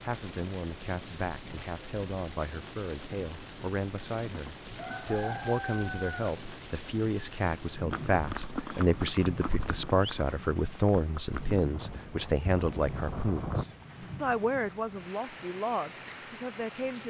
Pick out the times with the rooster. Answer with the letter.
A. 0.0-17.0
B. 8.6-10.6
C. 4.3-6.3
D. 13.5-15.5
C.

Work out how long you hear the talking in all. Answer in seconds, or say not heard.
17 s.